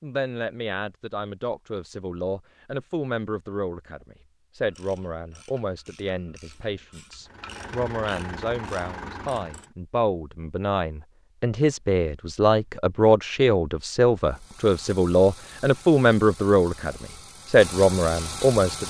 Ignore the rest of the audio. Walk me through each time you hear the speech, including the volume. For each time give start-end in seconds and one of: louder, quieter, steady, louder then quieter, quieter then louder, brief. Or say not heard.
0.0-18.8 louder.